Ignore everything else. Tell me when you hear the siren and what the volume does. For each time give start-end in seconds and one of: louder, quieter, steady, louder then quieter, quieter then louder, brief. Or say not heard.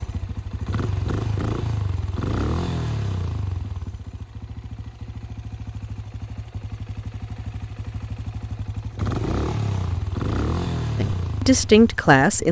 not heard.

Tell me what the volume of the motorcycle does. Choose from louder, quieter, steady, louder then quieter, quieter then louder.
quieter then louder.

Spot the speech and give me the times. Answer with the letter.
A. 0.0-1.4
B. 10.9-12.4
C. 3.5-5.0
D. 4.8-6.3
B.